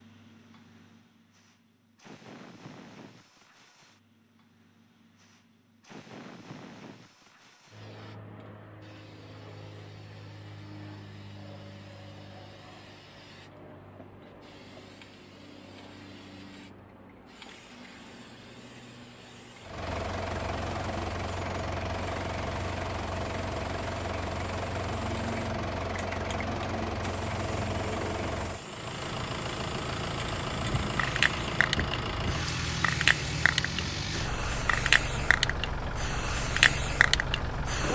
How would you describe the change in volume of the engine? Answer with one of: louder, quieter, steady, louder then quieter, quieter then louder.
steady.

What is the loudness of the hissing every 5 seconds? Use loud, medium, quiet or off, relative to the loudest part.
quiet, quiet, quiet, quiet, quiet, medium, loud, loud.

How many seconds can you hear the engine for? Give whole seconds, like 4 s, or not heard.
18 s.